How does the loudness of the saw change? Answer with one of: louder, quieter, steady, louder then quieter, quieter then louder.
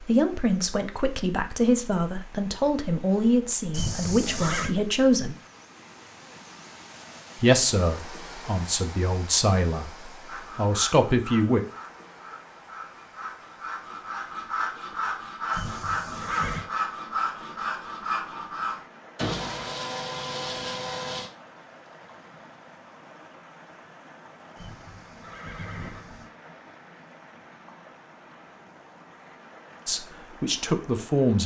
louder.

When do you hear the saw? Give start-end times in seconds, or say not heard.
10.2-21.3.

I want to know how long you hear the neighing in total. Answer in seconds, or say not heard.
4 s.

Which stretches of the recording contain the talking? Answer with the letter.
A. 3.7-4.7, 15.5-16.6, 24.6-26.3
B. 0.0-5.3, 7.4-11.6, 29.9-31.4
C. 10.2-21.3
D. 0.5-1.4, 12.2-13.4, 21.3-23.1
B.